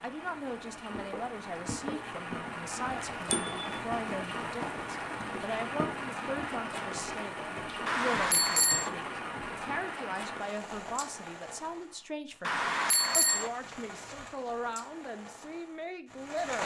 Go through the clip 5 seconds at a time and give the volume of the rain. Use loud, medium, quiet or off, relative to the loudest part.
loud, loud, medium, loud.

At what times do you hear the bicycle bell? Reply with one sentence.
You can hear the bicycle bell from 2.9 to 3.5 s, from 7.8 to 8.9 s and from 12.4 to 13.5 s.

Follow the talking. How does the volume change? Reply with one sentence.
The loudness of the talking stays about the same.